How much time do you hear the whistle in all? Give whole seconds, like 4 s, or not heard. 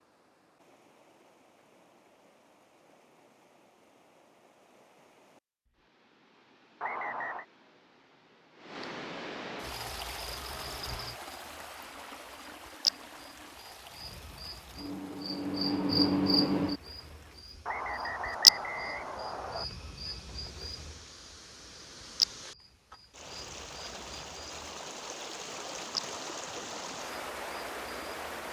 3 s.